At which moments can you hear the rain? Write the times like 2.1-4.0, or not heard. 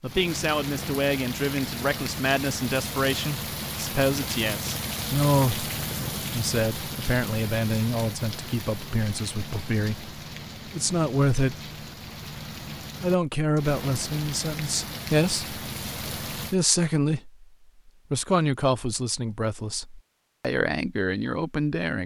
0.0-16.6.